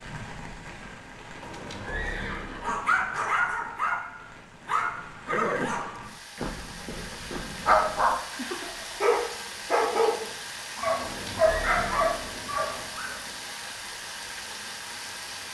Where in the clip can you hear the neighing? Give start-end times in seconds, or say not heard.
1.4-3.4, 5.2-5.9, 10.9-12.9.